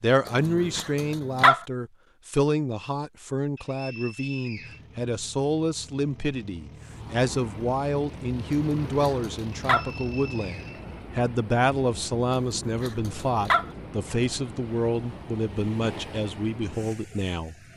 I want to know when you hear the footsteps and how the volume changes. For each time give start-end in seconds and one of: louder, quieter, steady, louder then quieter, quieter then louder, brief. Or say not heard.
not heard.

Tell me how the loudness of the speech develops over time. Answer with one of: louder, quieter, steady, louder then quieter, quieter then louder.
steady.